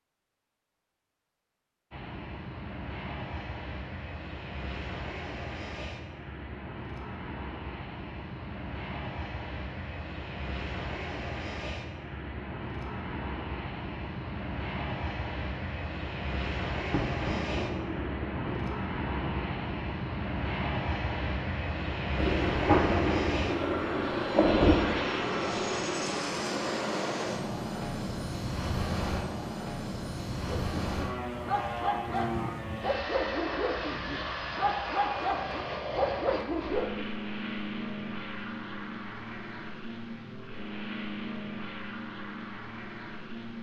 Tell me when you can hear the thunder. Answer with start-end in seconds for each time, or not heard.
16.9-19.5, 22.1-24.9.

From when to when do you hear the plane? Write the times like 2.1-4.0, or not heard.
1.9-43.5.